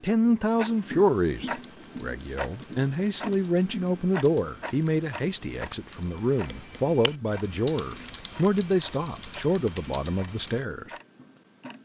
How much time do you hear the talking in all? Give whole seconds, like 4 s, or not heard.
11 s.